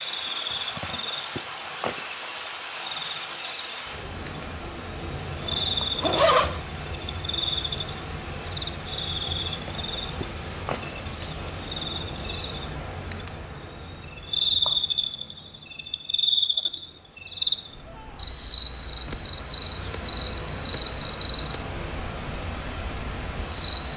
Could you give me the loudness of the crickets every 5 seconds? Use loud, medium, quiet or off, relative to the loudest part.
medium, loud, loud, loud, loud.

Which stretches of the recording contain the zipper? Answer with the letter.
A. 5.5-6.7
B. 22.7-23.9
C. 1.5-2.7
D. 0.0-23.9
A.